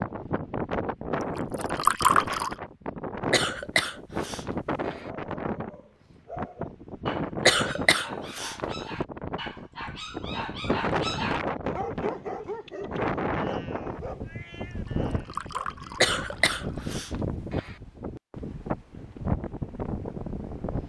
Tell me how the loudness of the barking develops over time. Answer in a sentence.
The volume of the barking goes up, then down.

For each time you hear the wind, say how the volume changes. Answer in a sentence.
You can hear the wind from 0.0 to 20.8 s, at a steady volume.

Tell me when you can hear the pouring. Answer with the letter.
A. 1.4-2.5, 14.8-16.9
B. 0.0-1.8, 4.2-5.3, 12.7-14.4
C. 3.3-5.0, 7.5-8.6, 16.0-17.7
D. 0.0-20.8
A.